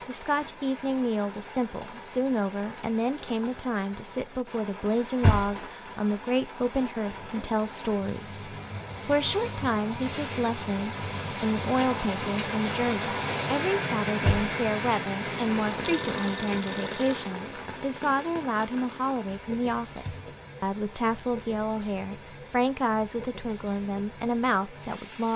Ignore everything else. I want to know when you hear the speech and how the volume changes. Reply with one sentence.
You can hear the speech from 0.1 to 25.3 s, at a steady volume.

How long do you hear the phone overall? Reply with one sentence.
The phone can be heard for 2 seconds in total.